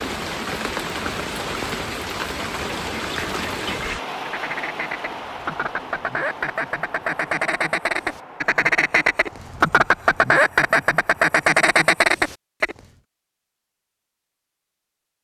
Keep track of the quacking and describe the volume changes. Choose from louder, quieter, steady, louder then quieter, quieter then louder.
louder.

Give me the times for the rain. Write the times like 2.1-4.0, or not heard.
0.0-12.2.